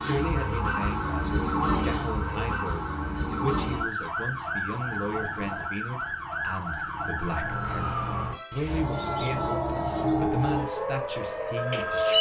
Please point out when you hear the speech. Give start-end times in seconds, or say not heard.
0.0-12.1.